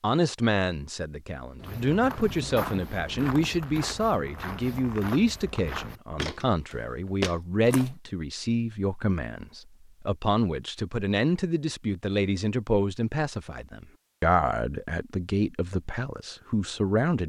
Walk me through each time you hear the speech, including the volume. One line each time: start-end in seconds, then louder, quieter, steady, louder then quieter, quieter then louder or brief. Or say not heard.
0.0-17.2 steady.